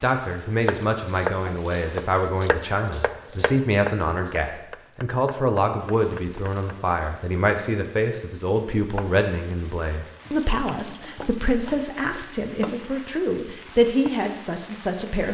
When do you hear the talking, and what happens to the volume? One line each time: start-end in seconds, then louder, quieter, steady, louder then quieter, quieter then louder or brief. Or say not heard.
0.0-15.2 steady.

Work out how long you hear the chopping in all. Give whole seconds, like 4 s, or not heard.
6 s.